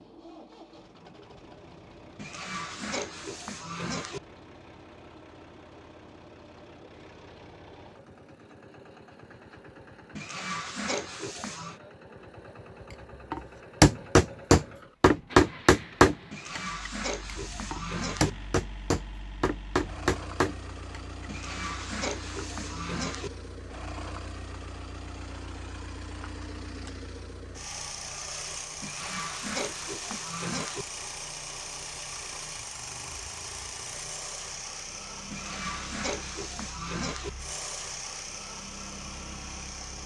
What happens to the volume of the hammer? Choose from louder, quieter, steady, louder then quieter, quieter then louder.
quieter then louder.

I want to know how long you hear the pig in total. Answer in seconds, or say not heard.
12 s.